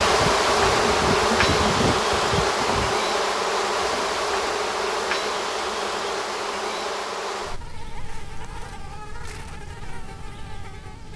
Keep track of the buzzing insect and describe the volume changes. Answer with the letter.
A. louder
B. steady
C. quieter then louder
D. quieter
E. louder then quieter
D.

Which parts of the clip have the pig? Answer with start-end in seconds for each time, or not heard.
0.0-3.0.